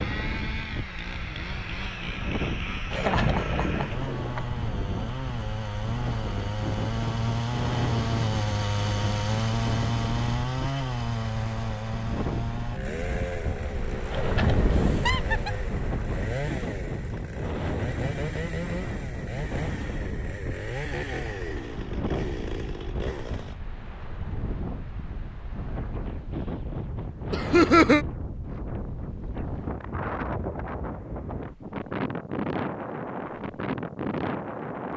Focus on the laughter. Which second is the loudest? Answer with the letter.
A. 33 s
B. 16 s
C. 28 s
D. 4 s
C.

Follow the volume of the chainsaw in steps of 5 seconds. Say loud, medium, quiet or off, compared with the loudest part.
medium, loud, loud, medium, medium, off, off.